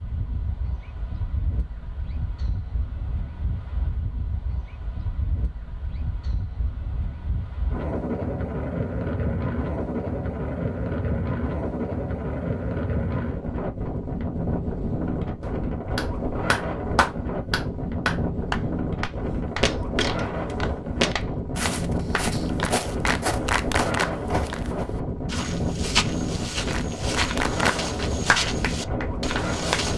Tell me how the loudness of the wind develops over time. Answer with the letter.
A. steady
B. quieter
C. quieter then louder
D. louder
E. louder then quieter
D.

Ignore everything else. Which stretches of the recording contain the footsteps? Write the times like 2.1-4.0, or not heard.
19.4-29.9.